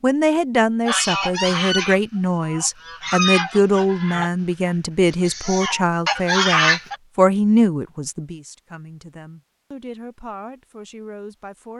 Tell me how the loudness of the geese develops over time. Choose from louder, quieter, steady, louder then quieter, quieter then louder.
quieter then louder.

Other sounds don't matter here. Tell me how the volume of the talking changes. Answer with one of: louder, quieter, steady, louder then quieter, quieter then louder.
quieter.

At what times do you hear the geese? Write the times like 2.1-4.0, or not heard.
0.8-7.0.